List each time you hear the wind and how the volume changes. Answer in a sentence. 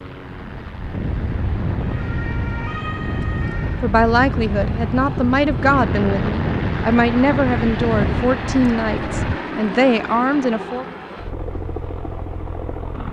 The wind can be heard from 0.2 to 9.4 s, at a steady volume.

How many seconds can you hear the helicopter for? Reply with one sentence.
The helicopter can be heard for 13 seconds in total.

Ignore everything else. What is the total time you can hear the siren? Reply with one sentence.
You can hear the siren for 2 seconds altogether.